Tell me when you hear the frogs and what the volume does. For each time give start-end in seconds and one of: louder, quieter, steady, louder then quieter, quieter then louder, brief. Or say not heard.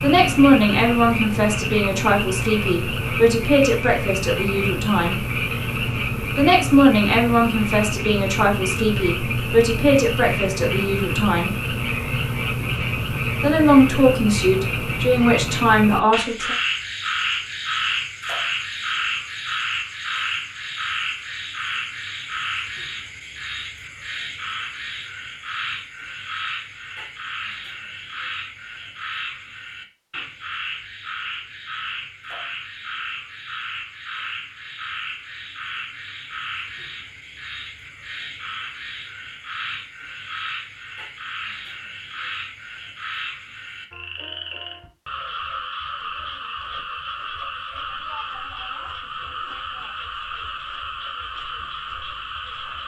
0.0-52.8 quieter.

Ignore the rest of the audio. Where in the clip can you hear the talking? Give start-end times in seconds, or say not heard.
0.0-5.2, 6.3-11.6, 13.4-16.6.